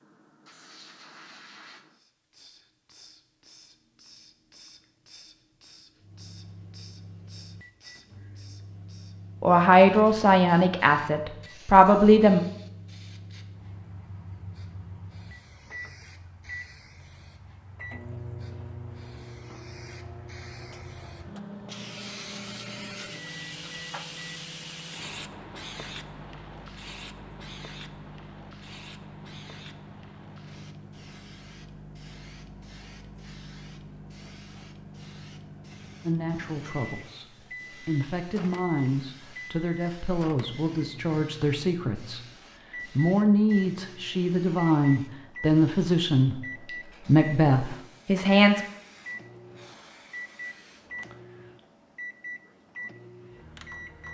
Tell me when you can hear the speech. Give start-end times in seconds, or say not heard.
9.4-12.4, 36.0-48.6.